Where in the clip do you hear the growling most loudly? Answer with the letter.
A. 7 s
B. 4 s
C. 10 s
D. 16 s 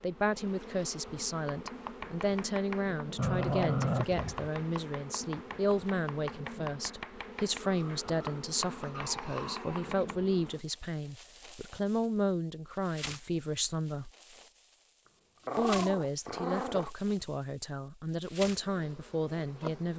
B.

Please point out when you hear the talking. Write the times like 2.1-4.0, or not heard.
0.0-14.1, 15.6-19.9.